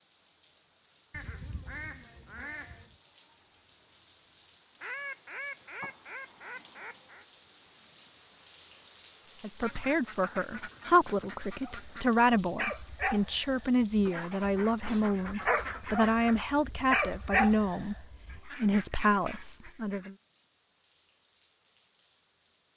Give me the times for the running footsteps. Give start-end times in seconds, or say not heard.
not heard.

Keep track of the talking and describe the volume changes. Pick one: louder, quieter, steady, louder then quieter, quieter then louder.
steady.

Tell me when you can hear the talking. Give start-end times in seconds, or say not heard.
9.4-20.1.